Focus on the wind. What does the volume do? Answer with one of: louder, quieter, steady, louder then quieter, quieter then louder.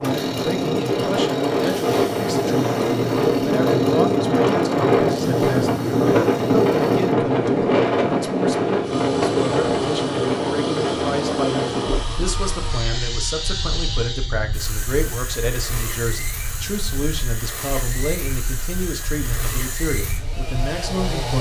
quieter.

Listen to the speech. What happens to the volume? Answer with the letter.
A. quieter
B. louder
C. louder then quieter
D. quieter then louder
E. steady
E.